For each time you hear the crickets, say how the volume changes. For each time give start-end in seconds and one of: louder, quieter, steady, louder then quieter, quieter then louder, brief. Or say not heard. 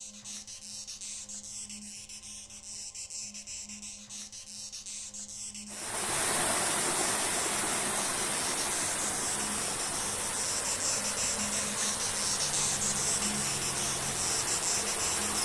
0.0-15.4 louder.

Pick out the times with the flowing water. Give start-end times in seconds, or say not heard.
5.7-15.4.